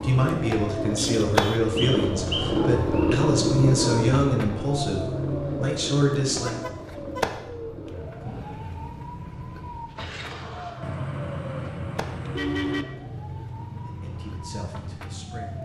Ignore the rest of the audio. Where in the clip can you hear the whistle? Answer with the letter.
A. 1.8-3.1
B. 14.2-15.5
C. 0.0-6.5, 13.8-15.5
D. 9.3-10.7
A.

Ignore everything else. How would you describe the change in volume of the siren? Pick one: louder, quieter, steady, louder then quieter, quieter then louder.
quieter.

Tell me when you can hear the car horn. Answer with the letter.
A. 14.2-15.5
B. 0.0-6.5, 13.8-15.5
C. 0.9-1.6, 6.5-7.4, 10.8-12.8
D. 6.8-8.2
C.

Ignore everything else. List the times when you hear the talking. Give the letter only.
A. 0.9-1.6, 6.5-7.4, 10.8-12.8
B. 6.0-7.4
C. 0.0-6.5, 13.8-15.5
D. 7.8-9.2
C.